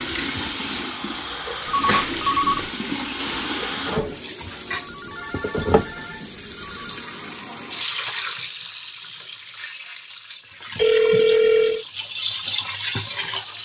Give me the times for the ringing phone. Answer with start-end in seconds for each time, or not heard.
1.6-2.7, 4.8-7.0, 10.8-11.8.